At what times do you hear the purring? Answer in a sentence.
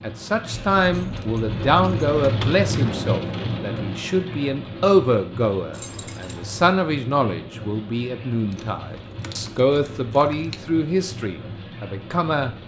You can't hear the purring here.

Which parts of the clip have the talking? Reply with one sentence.
The talking can be heard from 0.0 to 12.5 s.